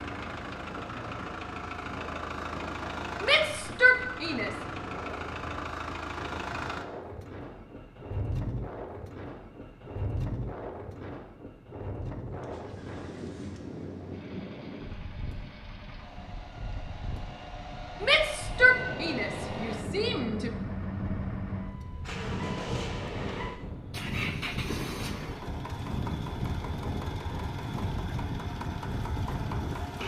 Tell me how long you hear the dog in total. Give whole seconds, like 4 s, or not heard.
not heard.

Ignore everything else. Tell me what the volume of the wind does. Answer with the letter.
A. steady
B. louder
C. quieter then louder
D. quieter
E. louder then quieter
B.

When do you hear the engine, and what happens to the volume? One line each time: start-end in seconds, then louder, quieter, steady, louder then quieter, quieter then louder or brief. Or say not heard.
0.0-30.0 quieter then louder.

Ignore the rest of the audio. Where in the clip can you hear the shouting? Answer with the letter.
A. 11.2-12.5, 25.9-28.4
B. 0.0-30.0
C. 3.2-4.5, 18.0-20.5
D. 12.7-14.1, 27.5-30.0
C.